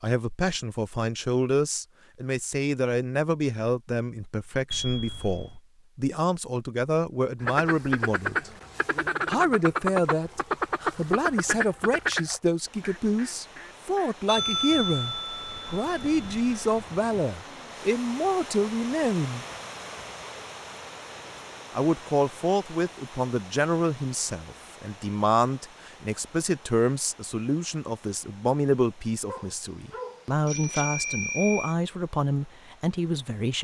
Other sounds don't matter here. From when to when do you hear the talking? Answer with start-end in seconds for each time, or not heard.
0.0-8.5, 9.2-19.4, 21.8-33.5.